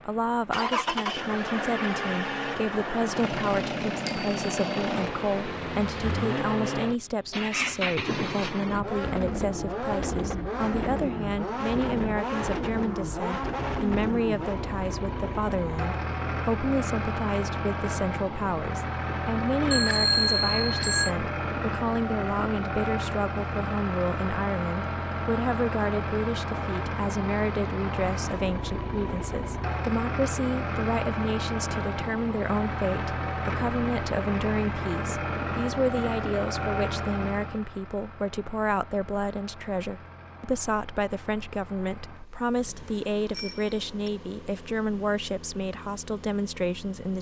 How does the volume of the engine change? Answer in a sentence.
The volume of the engine goes down.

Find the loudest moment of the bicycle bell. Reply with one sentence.
The volume of the bicycle bell peaks at 20 seconds.